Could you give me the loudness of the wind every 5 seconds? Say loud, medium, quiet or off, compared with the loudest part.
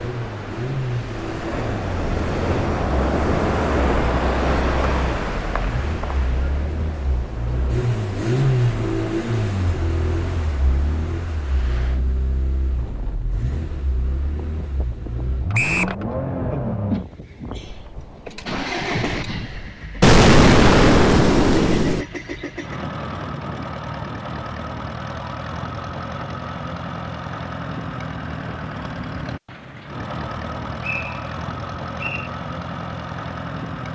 loud, medium, quiet, quiet, off, off, off.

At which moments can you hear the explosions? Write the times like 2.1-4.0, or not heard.
20.0-22.1.